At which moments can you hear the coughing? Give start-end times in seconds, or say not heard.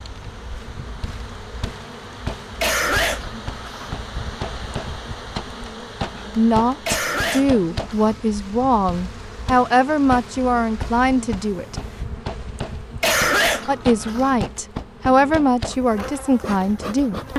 2.6-4.0, 6.8-8.2, 13.0-14.3.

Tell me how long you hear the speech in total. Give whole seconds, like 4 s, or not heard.
9 s.